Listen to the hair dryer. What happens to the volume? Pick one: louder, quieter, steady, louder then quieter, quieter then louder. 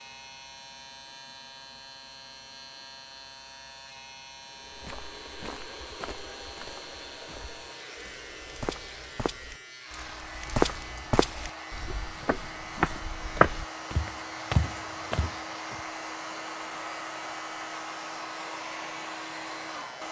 louder.